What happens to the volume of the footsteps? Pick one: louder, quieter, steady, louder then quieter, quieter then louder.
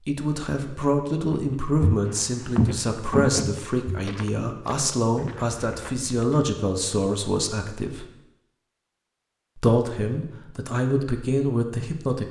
quieter.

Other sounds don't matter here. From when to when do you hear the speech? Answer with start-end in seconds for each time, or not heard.
0.1-8.1, 9.6-12.2.